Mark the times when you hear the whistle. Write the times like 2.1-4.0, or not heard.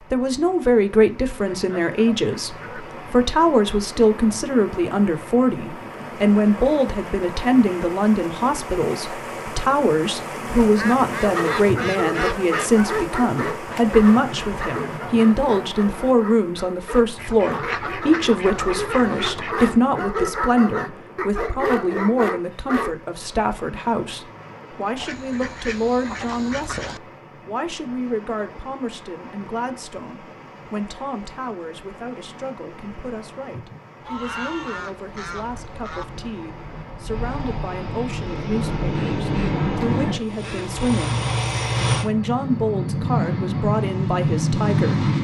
not heard.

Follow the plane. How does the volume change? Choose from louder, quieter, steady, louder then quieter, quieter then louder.
louder.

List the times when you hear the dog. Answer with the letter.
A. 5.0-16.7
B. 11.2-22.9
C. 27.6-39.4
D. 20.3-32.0
B.